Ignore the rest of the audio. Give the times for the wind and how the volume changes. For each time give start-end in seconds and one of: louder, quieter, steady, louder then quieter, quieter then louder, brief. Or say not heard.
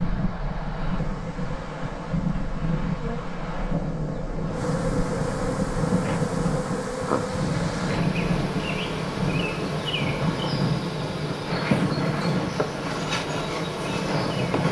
0.0-14.6 steady.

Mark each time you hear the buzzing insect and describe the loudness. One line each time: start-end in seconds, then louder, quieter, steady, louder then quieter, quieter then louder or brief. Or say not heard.
0.0-14.6 louder.